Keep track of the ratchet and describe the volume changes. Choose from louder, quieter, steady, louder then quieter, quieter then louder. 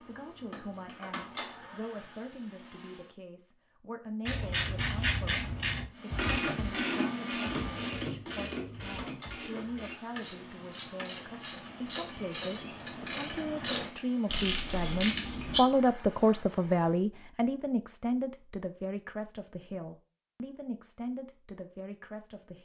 quieter then louder.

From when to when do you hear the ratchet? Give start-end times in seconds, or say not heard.
4.2-15.6.